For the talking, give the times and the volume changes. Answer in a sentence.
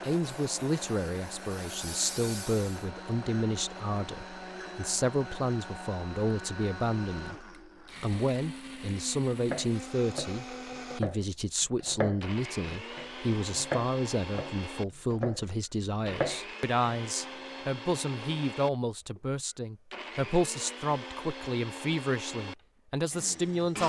The talking can be heard from 0.0 to 23.8 s, at a steady volume.